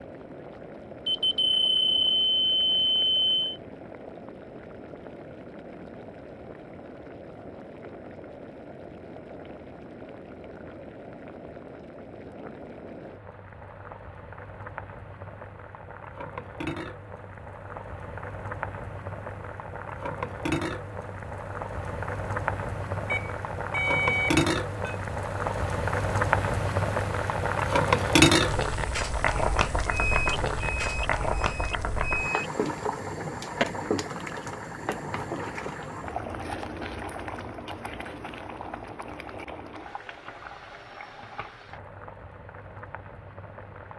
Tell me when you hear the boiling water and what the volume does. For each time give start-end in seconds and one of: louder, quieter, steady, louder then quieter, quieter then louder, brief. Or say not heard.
0.0-43.9 louder then quieter.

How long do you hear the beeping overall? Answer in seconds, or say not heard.
7 s.